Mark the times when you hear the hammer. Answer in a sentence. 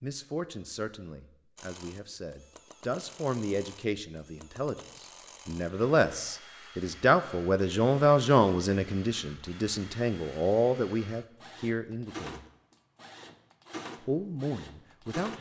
You can't hear the hammer here.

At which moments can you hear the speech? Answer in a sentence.
The speech can be heard from 0.0 to 12.4 s and from 14.0 to 15.3 s.